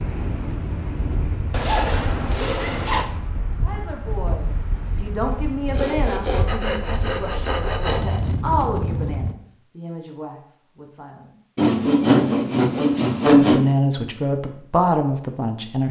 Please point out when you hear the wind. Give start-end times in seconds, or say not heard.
0.0-9.3.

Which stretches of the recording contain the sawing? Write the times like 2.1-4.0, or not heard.
1.5-3.0, 5.7-8.3, 11.6-13.6.